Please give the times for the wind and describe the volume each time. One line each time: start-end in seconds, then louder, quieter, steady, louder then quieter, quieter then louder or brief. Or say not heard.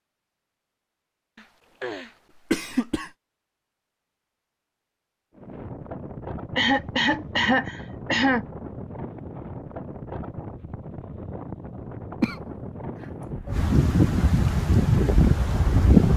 5.3-16.1 louder.